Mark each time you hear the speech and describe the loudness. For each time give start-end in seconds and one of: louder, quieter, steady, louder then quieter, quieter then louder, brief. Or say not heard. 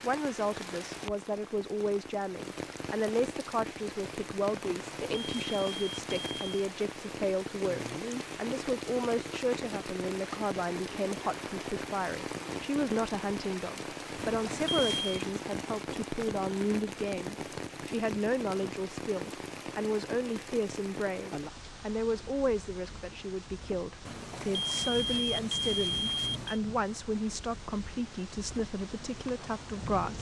0.0-30.1 steady.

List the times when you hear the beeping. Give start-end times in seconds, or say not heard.
4.8-6.6, 14.2-15.2, 24.1-26.6.